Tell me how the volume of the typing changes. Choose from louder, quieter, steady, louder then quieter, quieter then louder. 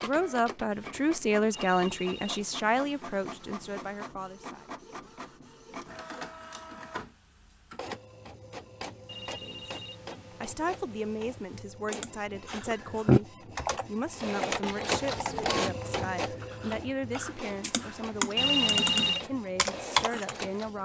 quieter then louder.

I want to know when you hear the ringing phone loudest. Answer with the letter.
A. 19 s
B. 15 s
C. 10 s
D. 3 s
A.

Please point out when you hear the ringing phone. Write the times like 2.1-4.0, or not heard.
1.5-3.9, 9.1-11.7, 18.4-19.2.